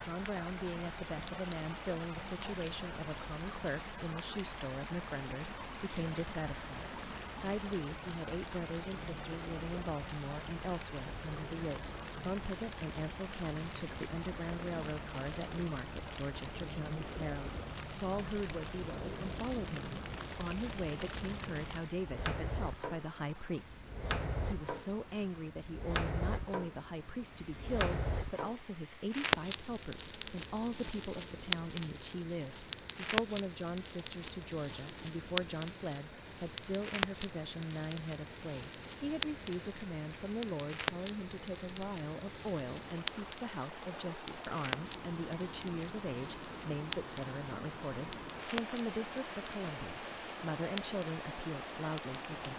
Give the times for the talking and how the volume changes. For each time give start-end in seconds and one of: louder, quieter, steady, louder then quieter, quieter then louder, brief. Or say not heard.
0.0-52.5 steady.